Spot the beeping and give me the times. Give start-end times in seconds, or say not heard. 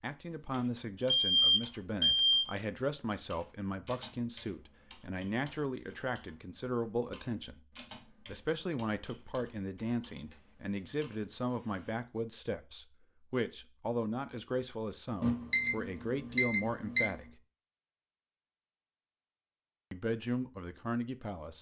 1.2-2.5, 10.3-12.1, 15.2-15.7, 16.4-17.1.